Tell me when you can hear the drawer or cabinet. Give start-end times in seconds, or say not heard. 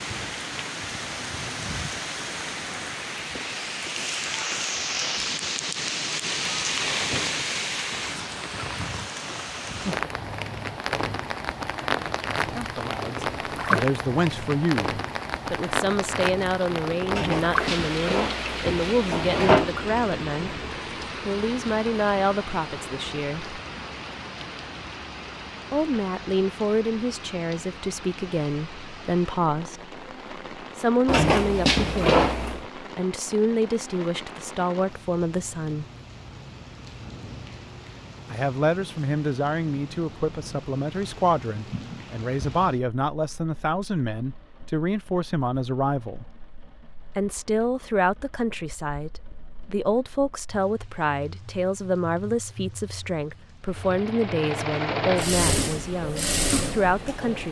17.1-19.8, 31.1-32.6.